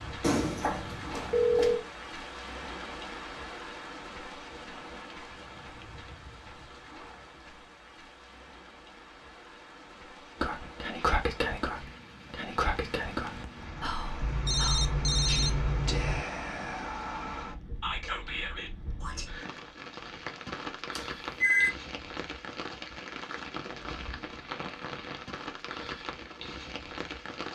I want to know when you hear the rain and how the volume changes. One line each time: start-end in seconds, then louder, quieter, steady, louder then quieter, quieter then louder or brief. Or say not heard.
0.0-27.4 quieter then louder.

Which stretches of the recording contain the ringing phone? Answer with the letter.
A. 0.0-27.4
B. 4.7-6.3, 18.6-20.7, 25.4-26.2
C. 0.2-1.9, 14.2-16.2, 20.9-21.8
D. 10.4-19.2
C.